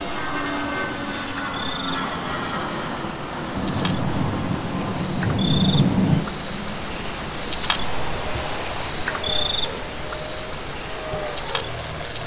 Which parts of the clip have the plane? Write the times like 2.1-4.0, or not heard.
0.0-12.2.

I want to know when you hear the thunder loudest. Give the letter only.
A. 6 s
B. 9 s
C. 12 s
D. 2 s
A.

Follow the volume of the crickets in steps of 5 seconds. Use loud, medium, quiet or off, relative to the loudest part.
medium, loud, loud.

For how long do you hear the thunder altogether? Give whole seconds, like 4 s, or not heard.
3 s.